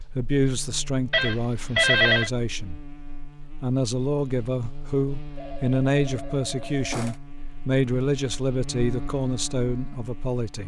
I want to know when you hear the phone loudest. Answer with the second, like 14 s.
2 s.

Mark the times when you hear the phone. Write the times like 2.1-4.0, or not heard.
1.1-2.3, 5.3-7.2.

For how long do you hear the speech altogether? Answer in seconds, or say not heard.
10 s.